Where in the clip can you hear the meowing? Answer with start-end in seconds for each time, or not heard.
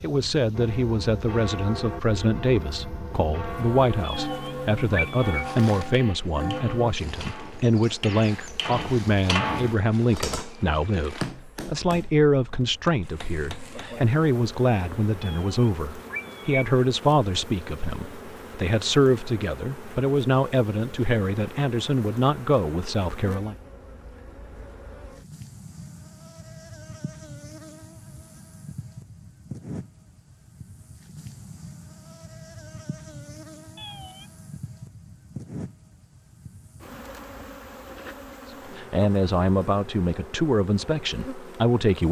4.0-5.5, 15.2-16.6, 33.8-34.3.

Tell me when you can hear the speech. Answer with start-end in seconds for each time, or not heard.
0.0-23.6, 38.8-42.0.